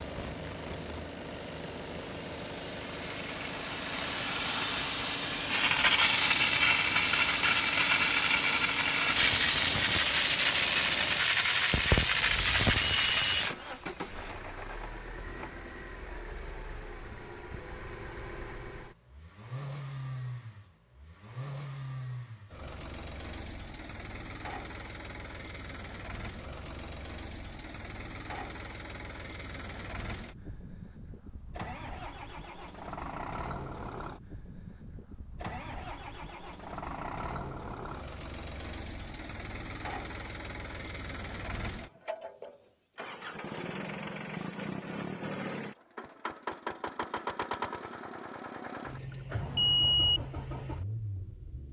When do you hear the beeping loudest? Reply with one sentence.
The volume of the beeping peaks at 50 seconds.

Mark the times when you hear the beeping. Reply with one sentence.
The beeping can be heard from 12.8 to 13.4 s and from 49.4 to 50.2 s.